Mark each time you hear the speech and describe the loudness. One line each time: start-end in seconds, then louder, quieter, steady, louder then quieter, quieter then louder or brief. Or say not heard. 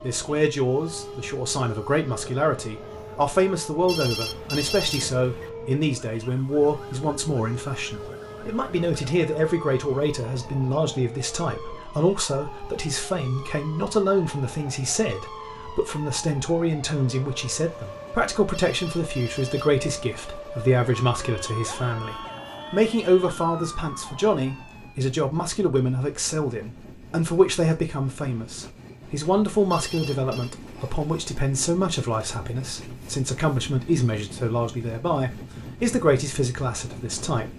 0.0-37.5 steady.